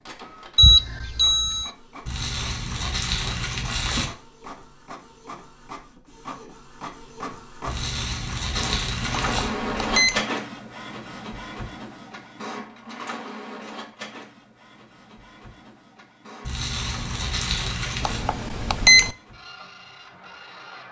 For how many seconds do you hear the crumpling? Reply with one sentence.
You can hear the crumpling for 6 seconds altogether.